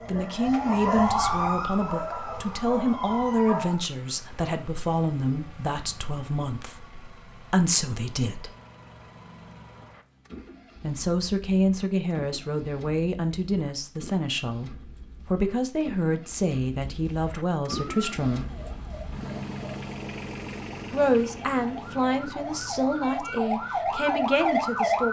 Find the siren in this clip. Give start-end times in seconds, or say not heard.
0.0-3.8, 17.9-25.0.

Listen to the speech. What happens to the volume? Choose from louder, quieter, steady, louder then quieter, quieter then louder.
steady.